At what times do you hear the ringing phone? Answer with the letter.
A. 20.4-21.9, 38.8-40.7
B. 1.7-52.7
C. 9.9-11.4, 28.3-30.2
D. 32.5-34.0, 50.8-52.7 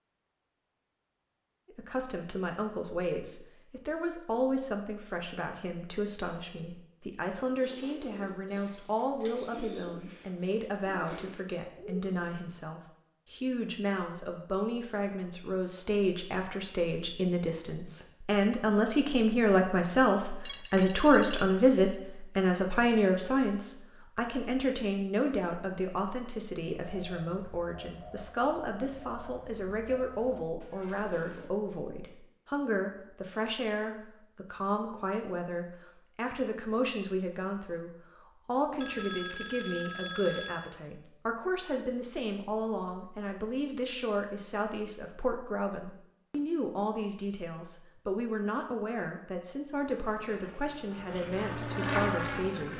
A.